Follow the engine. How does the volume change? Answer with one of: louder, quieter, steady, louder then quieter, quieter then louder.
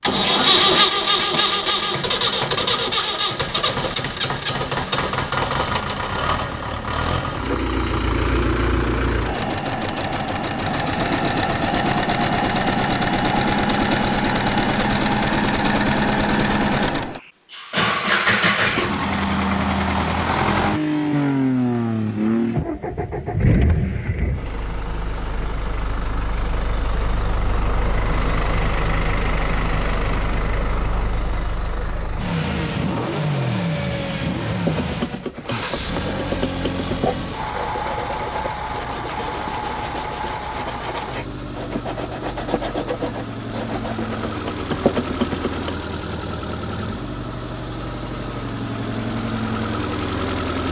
quieter.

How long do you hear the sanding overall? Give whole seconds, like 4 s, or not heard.
11 s.